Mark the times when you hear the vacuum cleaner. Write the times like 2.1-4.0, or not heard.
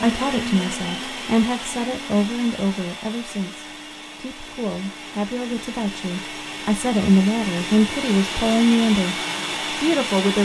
0.0-10.4.